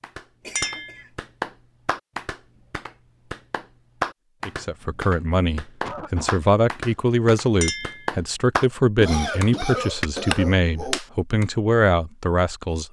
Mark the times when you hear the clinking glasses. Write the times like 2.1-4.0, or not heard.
0.6-1.0, 7.6-8.1.